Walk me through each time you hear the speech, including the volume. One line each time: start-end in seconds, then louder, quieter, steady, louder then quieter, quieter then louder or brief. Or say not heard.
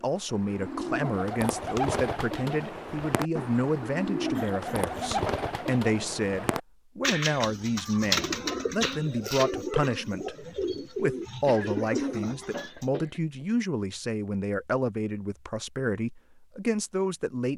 0.0-17.5 steady.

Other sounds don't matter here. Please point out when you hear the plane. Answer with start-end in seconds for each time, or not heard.
not heard.